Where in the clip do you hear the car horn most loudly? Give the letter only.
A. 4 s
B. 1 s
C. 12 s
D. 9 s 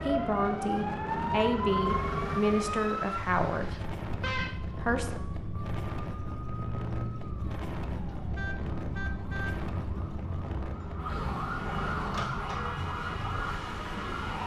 A.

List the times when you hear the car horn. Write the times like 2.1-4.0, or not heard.
3.6-4.6, 8.3-9.6.